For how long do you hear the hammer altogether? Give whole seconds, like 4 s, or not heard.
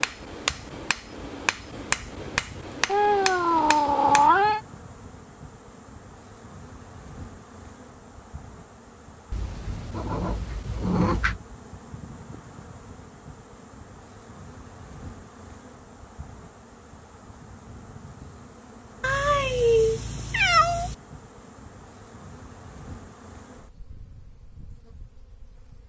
4 s.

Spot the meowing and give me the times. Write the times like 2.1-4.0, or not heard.
2.9-4.6, 9.3-11.4, 19.0-20.9.